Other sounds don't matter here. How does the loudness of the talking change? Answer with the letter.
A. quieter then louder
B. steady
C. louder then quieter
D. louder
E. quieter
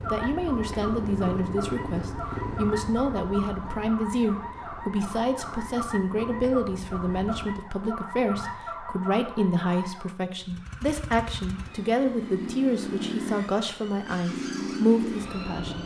B.